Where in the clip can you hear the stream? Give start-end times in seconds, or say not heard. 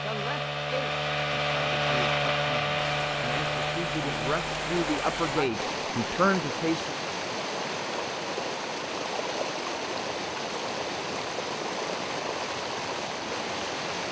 2.8-14.0.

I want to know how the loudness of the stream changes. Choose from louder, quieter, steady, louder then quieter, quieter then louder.
steady.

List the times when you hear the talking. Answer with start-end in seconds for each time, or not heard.
0.0-7.0.